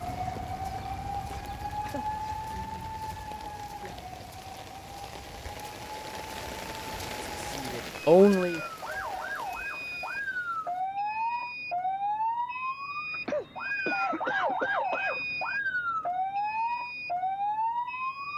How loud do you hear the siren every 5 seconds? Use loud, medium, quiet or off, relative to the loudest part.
medium, medium, loud, loud.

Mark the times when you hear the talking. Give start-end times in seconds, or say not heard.
7.0-8.7.